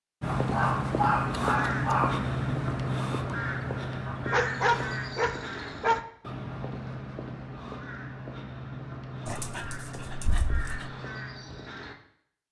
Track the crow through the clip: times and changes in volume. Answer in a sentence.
The crow can be heard from 0.2 to 11.9 s, getting quieter.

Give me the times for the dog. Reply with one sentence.
You can hear the dog from 0.2 to 2.2 s, from 4.3 to 6.0 s and from 9.2 to 10.9 s.